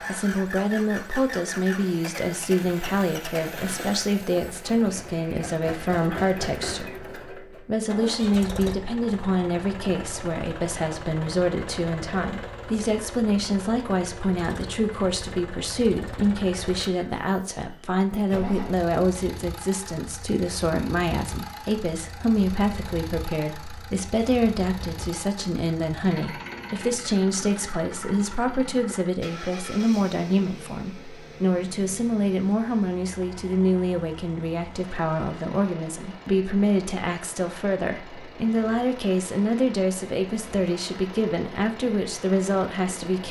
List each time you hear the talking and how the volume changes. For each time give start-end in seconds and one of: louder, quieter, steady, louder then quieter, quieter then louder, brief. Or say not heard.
0.1-43.2 steady.